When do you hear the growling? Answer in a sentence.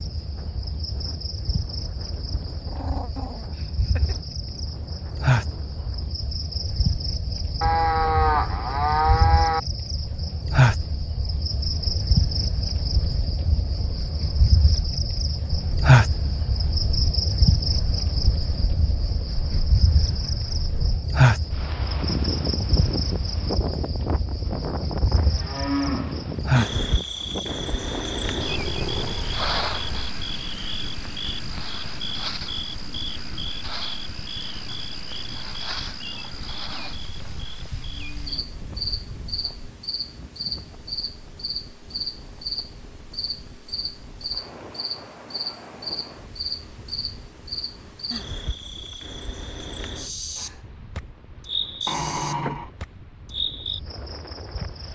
You can hear the growling from 2.6 to 4.2 s, from 28.1 to 30.1 s and from 51.9 to 52.7 s.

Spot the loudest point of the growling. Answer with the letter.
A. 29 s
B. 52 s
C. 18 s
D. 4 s
B.